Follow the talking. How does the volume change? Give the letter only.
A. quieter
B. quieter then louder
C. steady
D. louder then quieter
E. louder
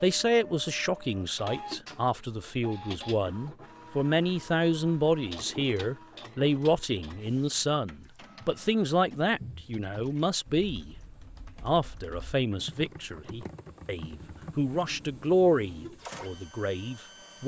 C.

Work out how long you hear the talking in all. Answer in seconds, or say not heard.
17 s.